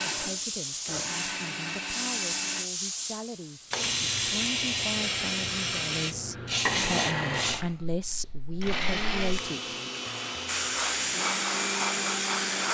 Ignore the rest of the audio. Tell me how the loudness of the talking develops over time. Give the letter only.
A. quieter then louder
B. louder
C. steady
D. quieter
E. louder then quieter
B.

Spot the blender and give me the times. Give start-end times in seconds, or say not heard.
0.0-2.7, 6.5-12.7.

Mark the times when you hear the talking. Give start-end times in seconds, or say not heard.
0.0-9.8.